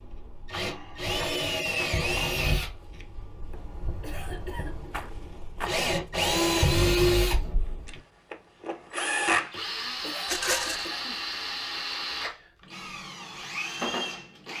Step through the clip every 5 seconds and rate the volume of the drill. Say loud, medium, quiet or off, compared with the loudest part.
medium, loud, medium.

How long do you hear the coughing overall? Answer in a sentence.
The coughing can be heard for 3 seconds in total.